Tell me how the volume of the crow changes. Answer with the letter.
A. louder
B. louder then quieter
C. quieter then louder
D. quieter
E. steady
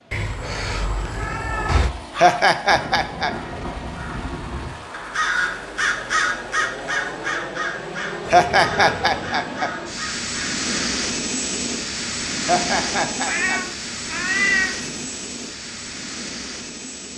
B.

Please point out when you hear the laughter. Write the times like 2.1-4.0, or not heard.
2.1-3.3, 8.2-9.7, 12.4-13.6.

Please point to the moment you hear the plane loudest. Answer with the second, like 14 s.
11 s.